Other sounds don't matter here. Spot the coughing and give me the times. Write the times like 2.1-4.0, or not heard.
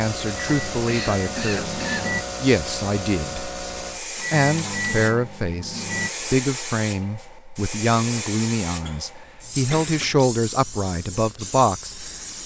0.8-2.1, 8.8-10.2.